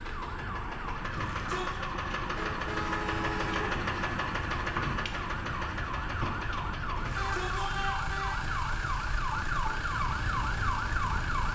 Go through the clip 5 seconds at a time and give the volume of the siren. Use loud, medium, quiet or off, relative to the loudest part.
medium, loud, loud.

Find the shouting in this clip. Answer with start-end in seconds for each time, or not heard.
1.1-1.8, 7.0-8.0.